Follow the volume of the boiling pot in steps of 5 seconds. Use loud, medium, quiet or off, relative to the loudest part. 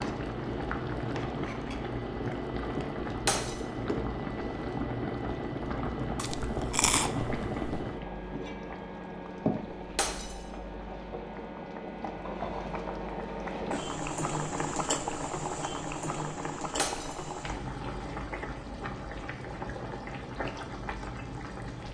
loud, loud, loud, loud, medium.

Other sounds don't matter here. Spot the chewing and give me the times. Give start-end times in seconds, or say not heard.
6.2-7.8.